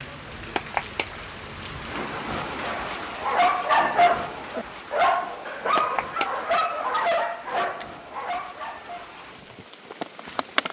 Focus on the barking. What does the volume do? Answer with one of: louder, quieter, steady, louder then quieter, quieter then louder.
quieter.